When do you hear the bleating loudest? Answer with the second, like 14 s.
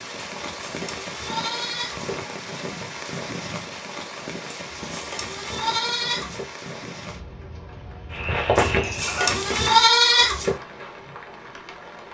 10 s.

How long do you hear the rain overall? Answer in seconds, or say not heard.
12 s.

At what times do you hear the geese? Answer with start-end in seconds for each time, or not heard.
8.1-9.7.